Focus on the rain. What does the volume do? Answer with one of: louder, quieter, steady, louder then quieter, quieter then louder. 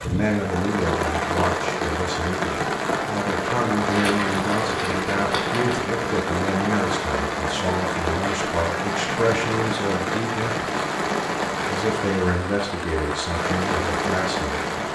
steady.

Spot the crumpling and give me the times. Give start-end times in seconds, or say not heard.
3.9-5.8.